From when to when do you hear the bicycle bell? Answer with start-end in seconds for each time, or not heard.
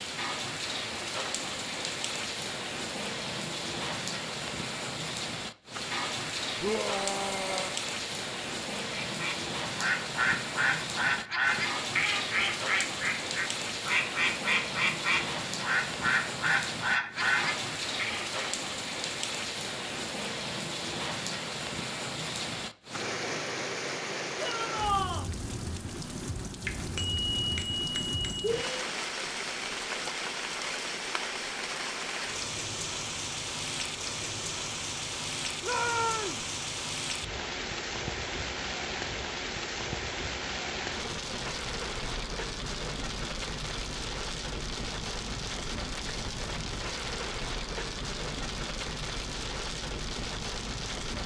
26.6-28.8.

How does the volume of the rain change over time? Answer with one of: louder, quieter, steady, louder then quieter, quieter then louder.
steady.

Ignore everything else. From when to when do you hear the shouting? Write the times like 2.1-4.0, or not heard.
6.6-7.8, 24.4-25.3, 35.6-36.5.